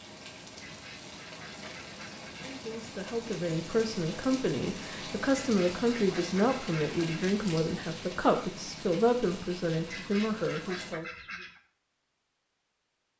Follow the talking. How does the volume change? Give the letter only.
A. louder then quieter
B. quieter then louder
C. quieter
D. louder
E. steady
E.